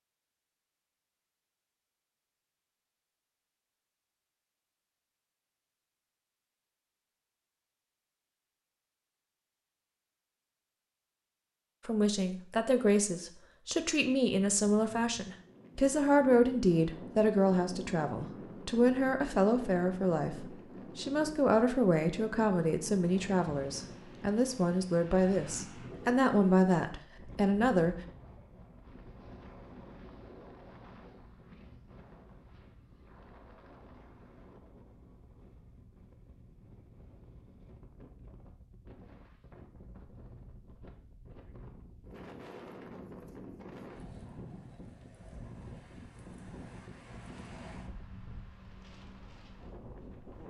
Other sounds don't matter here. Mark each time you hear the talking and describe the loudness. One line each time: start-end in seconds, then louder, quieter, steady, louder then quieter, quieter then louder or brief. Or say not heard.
11.8-28.0 steady.